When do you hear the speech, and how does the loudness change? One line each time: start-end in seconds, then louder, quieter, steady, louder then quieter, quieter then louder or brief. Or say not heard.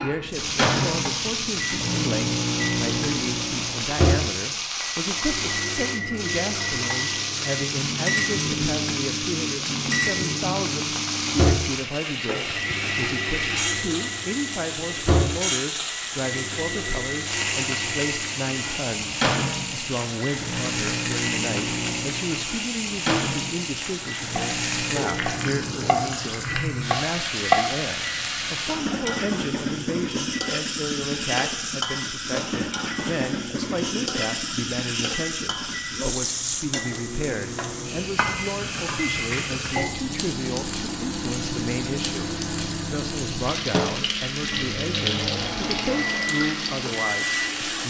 0.0-47.8 steady.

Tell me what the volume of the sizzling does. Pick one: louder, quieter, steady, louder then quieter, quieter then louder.
steady.